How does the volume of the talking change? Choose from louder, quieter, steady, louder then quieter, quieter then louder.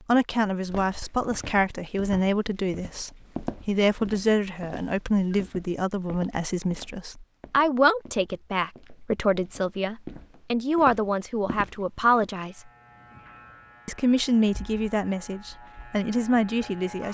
steady.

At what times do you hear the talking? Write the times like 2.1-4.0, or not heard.
0.1-12.6, 13.8-17.0.